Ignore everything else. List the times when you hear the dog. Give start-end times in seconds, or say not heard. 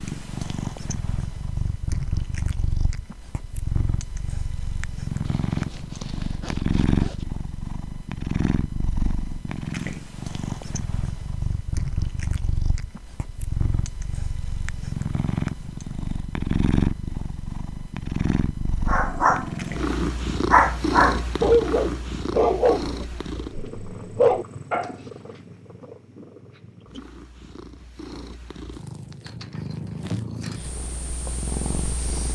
18.9-24.9.